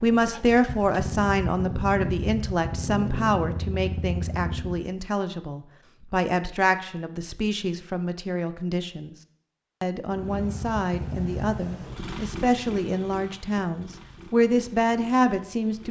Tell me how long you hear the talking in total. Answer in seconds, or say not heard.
15 s.